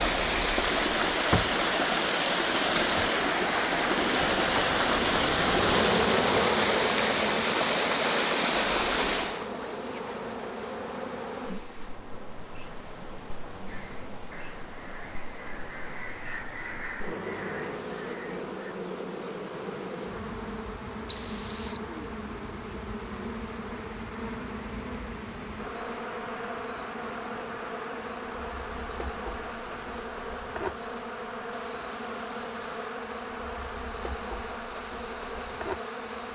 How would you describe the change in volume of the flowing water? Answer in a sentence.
The loudness of the flowing water goes down.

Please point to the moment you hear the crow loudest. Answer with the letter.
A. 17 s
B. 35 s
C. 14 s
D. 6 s
A.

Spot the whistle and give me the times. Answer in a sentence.
The whistle can be heard from 21.1 to 21.8 s.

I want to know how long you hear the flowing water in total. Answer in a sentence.
You can hear the flowing water for 36 seconds altogether.